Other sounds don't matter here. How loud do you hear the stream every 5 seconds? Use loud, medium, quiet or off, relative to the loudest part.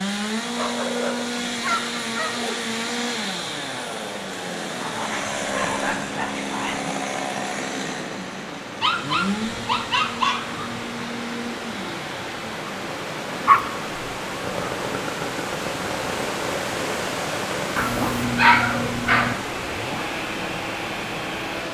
medium, medium, loud, loud, loud.